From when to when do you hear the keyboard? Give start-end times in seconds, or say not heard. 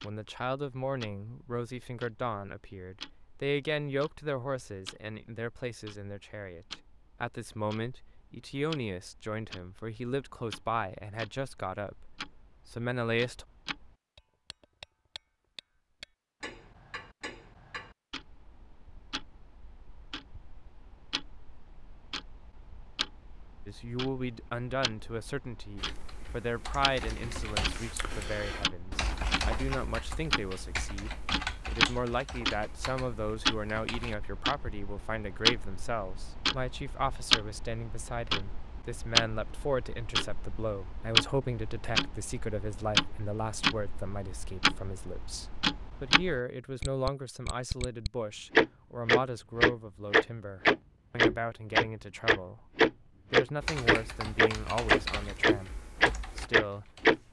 25.8-34.1, 53.6-57.2.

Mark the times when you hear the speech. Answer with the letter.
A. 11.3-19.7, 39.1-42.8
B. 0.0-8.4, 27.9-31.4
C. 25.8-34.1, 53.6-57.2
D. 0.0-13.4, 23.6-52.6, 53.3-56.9
D.